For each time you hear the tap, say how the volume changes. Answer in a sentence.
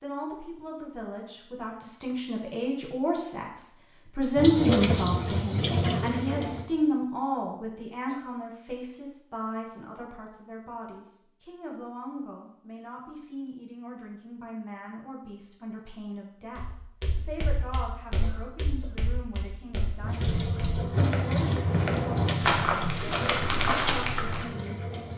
You can hear the tap briefly from 4.3 to 6.7 s; and from 20.0 to 25.1 s, getting quieter.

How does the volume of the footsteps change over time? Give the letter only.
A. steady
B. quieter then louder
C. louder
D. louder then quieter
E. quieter
C.